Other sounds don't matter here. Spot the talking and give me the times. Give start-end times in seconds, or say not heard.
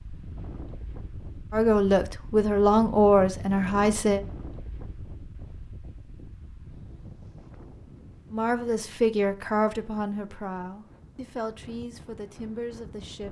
1.5-4.2, 8.3-13.2.